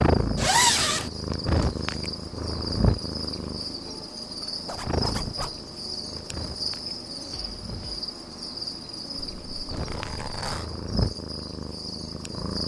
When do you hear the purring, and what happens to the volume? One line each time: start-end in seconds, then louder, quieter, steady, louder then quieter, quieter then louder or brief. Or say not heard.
0.0-12.6 quieter then louder.